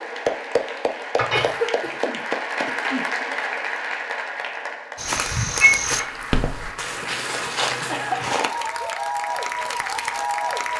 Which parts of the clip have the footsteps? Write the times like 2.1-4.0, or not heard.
5.0-8.5.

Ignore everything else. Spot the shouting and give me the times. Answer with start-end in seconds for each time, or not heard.
not heard.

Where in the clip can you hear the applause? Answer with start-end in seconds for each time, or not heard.
0.0-10.7.